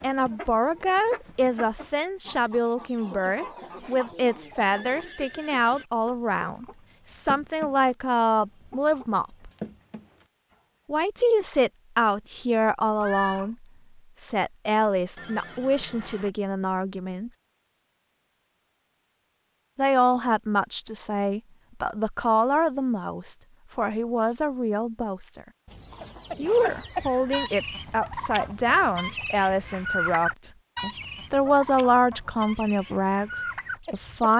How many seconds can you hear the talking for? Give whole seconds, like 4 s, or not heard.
29 s.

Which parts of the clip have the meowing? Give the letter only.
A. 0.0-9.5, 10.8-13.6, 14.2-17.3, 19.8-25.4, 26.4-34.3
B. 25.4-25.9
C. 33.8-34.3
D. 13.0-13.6
D.